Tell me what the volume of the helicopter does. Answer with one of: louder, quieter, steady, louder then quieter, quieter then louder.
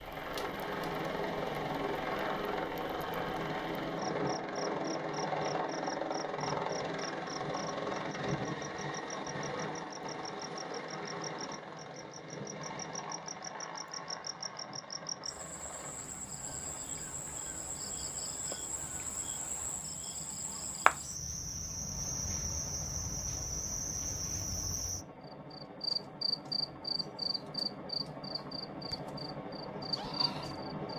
quieter then louder.